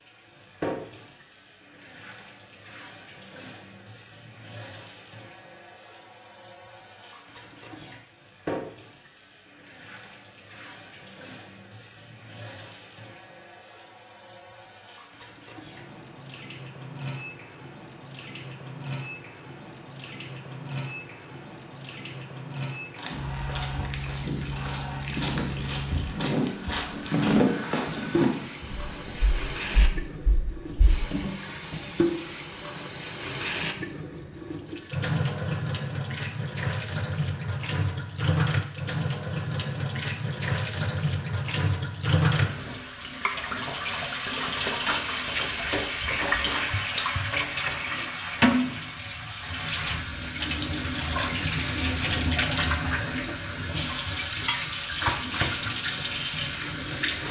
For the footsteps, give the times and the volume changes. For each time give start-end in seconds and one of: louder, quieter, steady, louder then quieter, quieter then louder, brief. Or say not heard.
22.9-31.1 louder then quieter.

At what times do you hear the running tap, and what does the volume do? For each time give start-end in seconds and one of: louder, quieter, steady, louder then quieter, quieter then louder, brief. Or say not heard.
0.0-57.2 louder.